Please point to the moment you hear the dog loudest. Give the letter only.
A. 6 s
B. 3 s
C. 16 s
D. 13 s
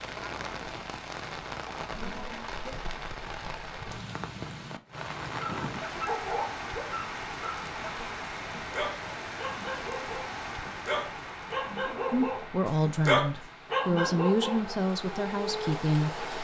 D.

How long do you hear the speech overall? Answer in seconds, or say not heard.
4 s.